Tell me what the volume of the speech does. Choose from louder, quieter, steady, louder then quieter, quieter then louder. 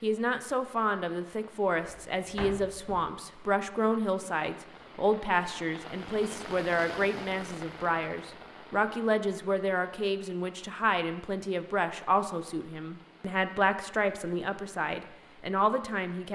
steady.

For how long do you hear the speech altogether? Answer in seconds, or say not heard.
16 s.